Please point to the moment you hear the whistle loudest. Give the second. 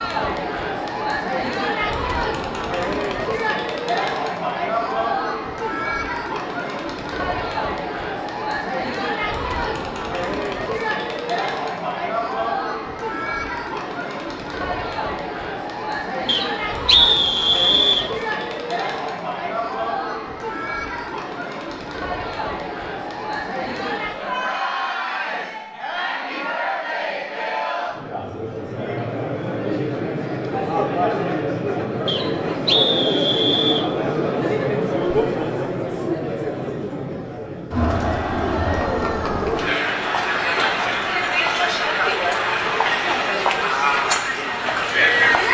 17 s.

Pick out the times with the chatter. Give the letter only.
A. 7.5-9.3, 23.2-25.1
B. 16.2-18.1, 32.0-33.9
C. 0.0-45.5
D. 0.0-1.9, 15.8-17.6
C.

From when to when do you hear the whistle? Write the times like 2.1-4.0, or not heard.
16.2-18.1, 32.0-33.9.